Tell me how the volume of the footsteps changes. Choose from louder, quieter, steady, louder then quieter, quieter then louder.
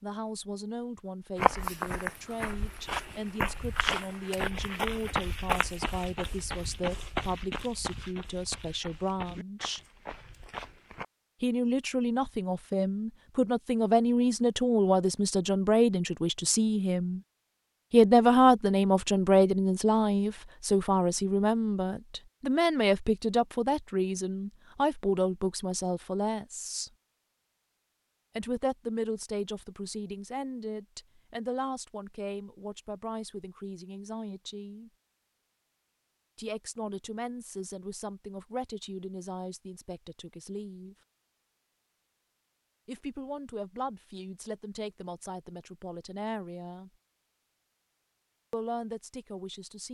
quieter.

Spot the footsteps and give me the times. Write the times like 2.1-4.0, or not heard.
1.4-11.1.